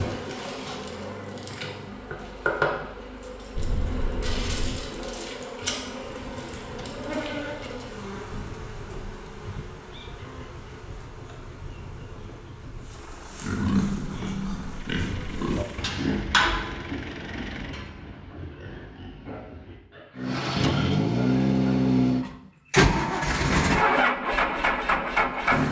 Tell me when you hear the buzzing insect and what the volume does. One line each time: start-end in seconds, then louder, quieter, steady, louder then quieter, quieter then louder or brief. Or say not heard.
0.0-15.8 quieter.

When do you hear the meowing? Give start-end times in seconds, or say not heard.
3.5-4.8.